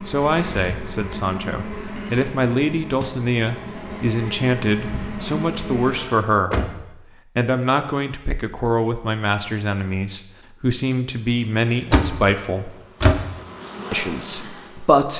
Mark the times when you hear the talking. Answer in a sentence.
The talking can be heard from 0.1 to 6.7 s, from 7.3 to 12.7 s and from 13.9 to 15.1 s.